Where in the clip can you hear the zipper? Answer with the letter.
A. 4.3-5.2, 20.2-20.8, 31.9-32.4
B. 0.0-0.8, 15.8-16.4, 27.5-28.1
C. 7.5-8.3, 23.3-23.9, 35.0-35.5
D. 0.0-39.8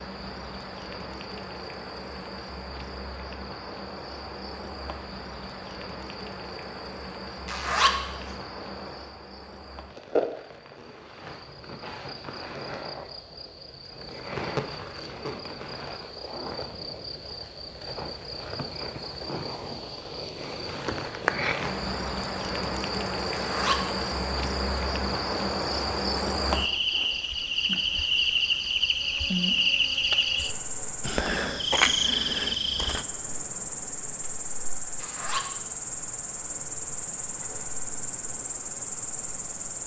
C.